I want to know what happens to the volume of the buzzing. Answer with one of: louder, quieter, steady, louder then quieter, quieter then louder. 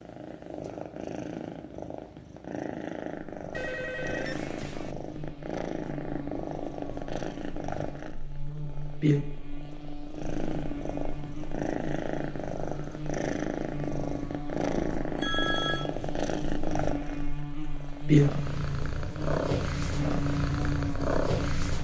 louder.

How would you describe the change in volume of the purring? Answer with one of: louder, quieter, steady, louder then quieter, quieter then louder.
louder.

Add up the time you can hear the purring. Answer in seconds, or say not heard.
22 s.